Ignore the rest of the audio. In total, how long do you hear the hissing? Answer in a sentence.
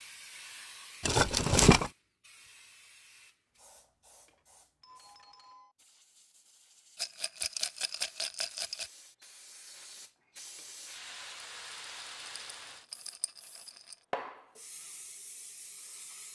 You can hear the hissing for 16 seconds altogether.